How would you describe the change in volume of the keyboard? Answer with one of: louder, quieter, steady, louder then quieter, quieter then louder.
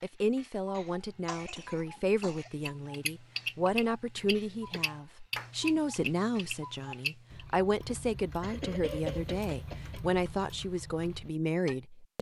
quieter.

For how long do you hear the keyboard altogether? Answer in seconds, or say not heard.
5 s.